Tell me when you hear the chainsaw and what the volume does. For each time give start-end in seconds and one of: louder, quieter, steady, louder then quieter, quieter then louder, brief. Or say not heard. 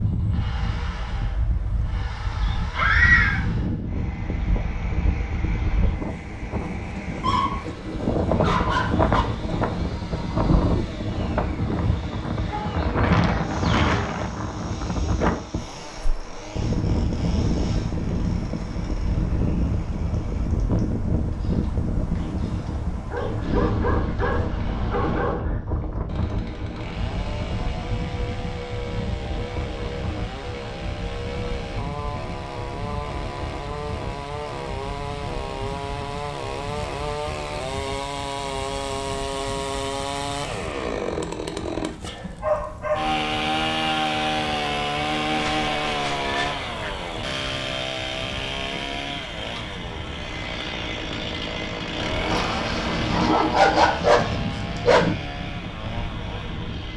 0.1-56.9 louder.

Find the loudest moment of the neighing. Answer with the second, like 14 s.
3 s.